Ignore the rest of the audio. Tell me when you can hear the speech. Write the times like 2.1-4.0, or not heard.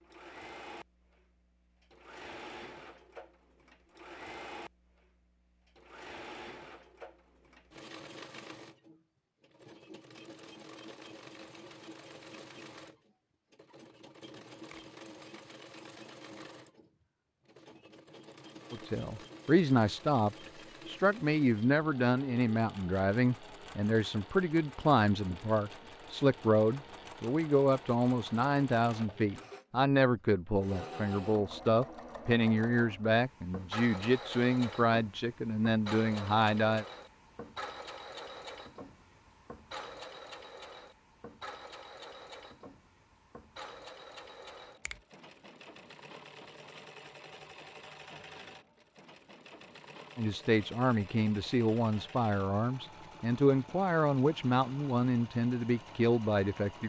18.7-36.9, 50.1-56.8.